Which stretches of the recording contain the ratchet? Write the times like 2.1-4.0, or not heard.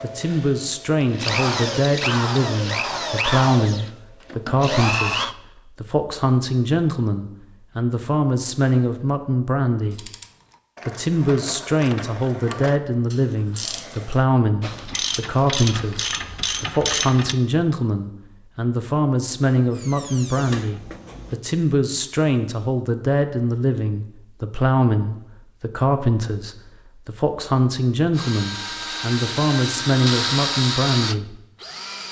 9.9-17.4.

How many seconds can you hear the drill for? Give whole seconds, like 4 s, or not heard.
11 s.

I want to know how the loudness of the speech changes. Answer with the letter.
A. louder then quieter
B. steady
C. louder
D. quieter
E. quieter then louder
B.